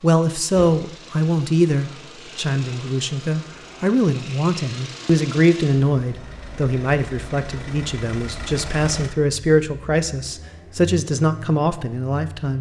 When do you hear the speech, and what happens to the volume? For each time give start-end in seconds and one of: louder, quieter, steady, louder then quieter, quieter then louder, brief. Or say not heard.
0.0-12.5 steady.